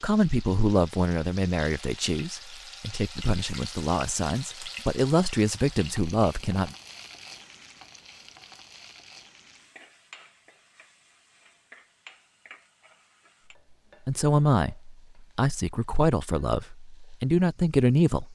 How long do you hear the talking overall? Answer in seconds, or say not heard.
11 s.